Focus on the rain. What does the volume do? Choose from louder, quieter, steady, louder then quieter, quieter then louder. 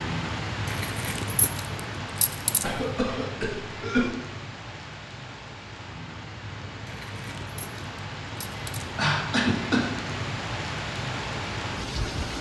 quieter then louder.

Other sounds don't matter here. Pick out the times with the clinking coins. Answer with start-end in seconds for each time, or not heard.
0.7-2.6, 6.8-8.8.